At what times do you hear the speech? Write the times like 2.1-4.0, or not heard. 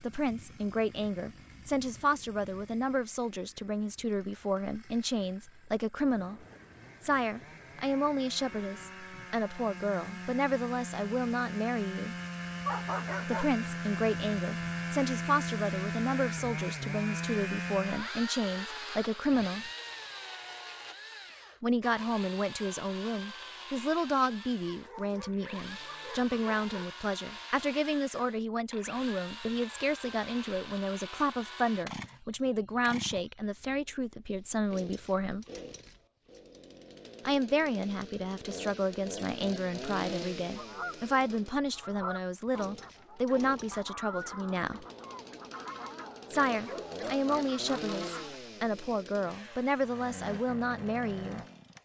0.0-6.4, 7.0-12.2, 13.2-19.7, 21.6-35.5, 37.2-44.9, 46.3-51.4.